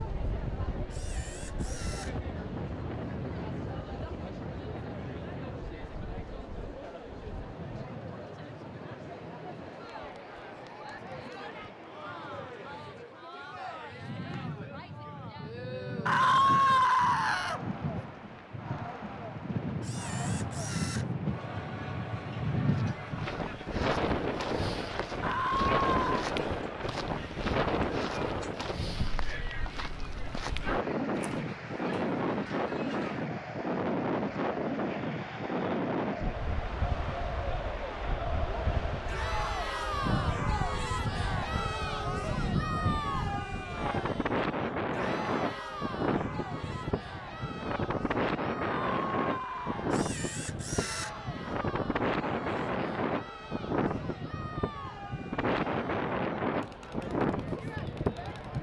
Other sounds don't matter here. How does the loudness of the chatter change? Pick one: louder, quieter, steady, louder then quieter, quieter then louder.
louder then quieter.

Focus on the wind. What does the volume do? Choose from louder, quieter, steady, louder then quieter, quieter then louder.
louder.